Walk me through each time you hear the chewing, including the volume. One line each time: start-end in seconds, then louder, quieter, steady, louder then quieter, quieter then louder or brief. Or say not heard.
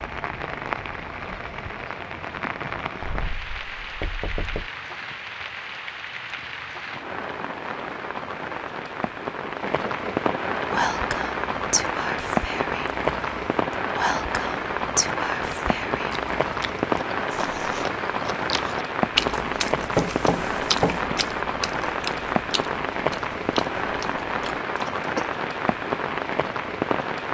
16.1-25.2 louder then quieter.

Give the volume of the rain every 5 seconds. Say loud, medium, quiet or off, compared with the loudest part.
medium, medium, loud, loud, loud, loud.